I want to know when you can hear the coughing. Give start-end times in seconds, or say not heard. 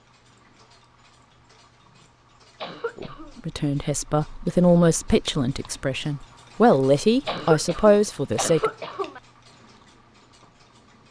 2.6-3.4, 7.2-9.2.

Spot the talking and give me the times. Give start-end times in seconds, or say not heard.
3.0-8.7.